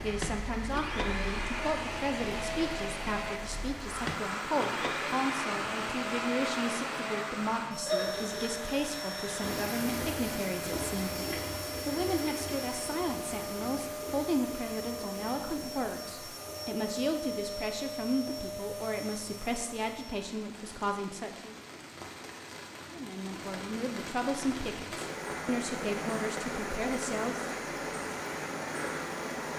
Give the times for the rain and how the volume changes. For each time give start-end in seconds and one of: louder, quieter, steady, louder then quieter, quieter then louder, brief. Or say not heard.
0.0-29.5 quieter then louder.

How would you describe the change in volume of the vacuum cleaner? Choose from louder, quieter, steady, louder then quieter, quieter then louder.
steady.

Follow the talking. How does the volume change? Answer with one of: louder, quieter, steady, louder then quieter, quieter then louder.
steady.